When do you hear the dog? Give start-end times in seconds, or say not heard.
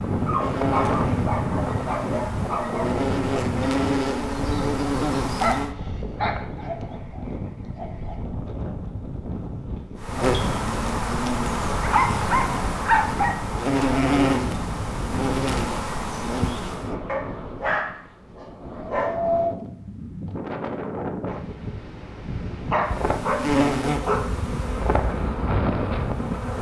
0.2-2.9, 5.4-8.2, 11.8-13.3, 17.1-19.1, 22.7-24.5.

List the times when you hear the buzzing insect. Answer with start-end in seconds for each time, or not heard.
0.0-5.8, 9.9-16.9, 22.9-26.5.